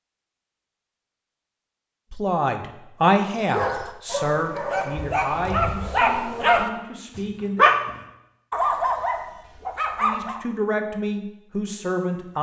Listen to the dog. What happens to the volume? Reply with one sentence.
The volume of the dog goes up, then down.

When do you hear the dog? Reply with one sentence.
You can hear the dog from 3.2 to 10.4 s.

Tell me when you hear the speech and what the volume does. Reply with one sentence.
The speech can be heard from 2.1 to 7.7 s, getting quieter; and briefly from 10.0 to 12.3 s.